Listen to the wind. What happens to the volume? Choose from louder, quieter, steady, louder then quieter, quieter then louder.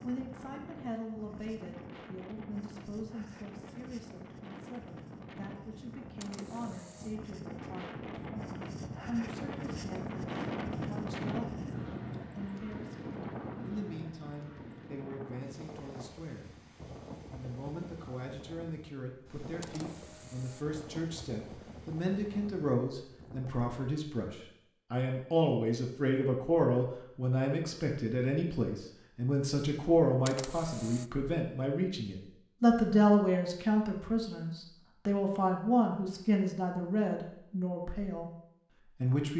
louder then quieter.